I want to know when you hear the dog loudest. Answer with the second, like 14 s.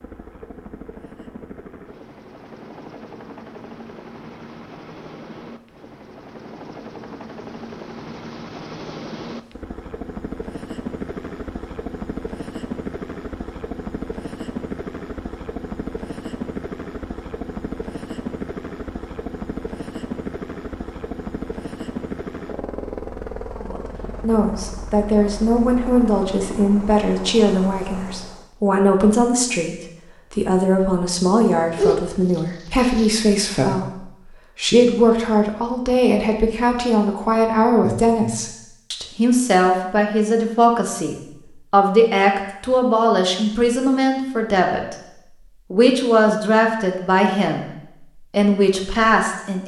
32 s.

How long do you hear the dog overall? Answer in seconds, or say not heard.
2 s.